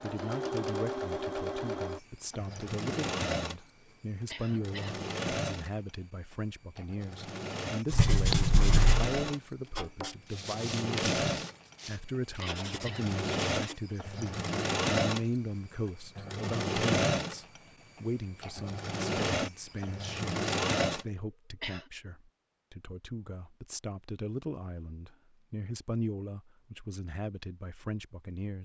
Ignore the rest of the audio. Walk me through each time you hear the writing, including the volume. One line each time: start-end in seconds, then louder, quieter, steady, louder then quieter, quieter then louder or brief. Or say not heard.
7.9-13.8 quieter then louder.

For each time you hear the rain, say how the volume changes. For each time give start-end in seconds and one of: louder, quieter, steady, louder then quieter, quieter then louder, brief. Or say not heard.
not heard.